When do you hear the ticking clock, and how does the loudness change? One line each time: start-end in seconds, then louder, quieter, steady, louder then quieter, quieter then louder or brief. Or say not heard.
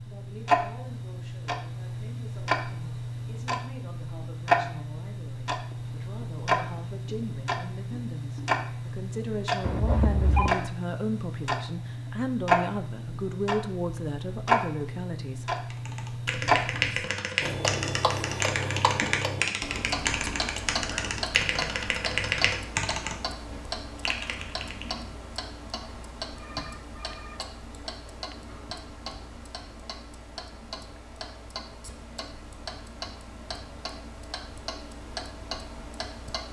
0.0-36.4 quieter.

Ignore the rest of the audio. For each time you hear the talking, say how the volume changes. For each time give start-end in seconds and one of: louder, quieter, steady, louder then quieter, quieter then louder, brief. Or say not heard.
0.0-15.4 louder.